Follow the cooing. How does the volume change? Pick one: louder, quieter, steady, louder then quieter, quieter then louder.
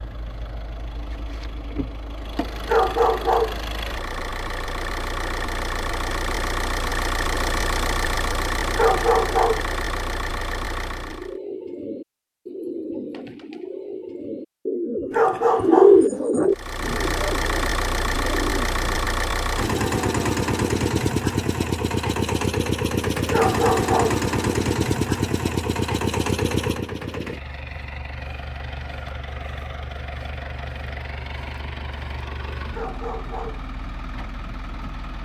louder then quieter.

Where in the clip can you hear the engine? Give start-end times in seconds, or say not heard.
0.0-11.3, 16.5-35.1.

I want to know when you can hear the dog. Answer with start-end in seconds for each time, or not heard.
2.6-3.6, 8.8-9.7, 15.1-16.1, 23.3-24.2, 32.7-33.6.